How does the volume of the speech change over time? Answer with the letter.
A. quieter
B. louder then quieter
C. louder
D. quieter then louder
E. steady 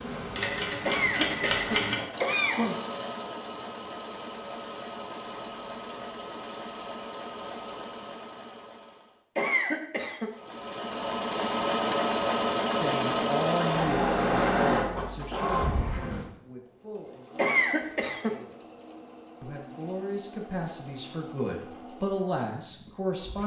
D.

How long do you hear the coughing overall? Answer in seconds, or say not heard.
4 s.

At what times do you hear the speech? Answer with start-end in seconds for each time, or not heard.
12.8-18.6, 19.4-23.4.